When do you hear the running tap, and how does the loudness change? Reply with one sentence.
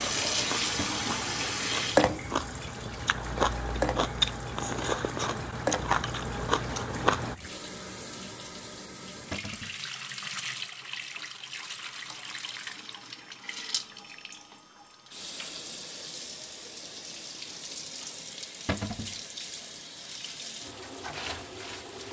You can hear the running tap from 0.0 to 22.0 s, getting quieter.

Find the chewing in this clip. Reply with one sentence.
You can hear the chewing from 0.0 to 7.3 s.